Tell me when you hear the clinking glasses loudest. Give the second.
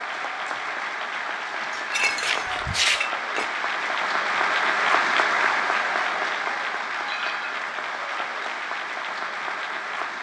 3 s.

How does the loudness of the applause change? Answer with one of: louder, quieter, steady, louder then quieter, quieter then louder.
louder then quieter.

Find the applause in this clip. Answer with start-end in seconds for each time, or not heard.
0.0-10.1.